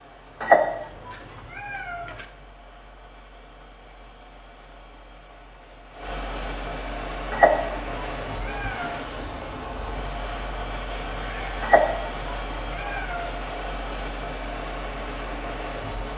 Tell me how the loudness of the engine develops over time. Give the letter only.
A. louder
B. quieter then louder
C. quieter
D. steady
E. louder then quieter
A.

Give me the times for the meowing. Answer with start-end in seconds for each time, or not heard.
0.4-2.2, 7.3-9.1, 11.6-13.2.